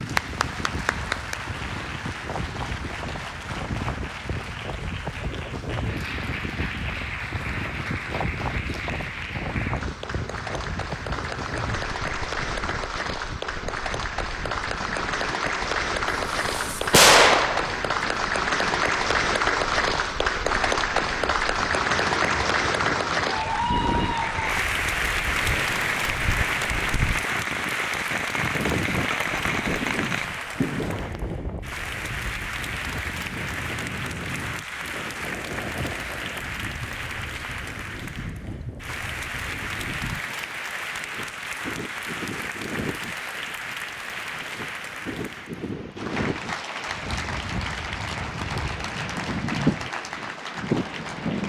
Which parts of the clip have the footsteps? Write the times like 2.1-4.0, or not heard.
not heard.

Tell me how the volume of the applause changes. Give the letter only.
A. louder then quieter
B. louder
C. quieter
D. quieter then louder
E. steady
A.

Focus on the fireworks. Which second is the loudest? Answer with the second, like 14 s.
17 s.